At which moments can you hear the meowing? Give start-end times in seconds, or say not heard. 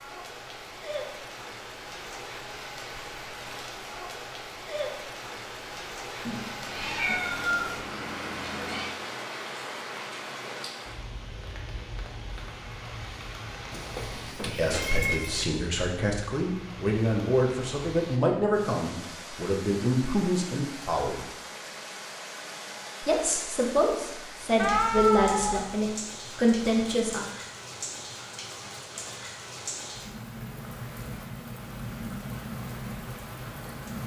6.2-8.9, 13.7-15.4, 24.6-25.6.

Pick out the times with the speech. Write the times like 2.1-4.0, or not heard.
14.4-21.2, 23.0-27.2.